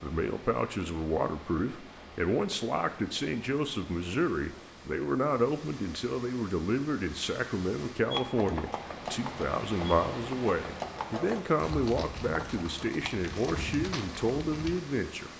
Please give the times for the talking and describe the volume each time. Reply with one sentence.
The talking can be heard from 0.0 to 15.3 s, at a steady volume.